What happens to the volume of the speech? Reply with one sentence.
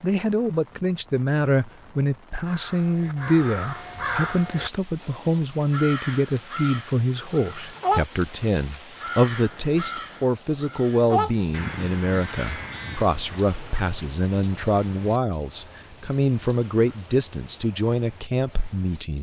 The loudness of the speech stays about the same.